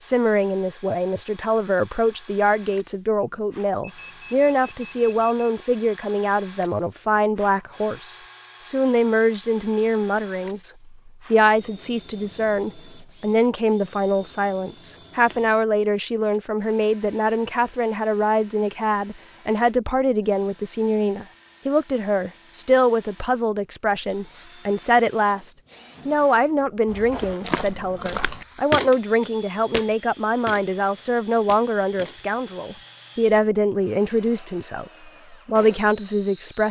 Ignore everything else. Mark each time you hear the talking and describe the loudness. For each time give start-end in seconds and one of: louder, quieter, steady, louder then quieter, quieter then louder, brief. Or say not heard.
0.0-36.6 steady.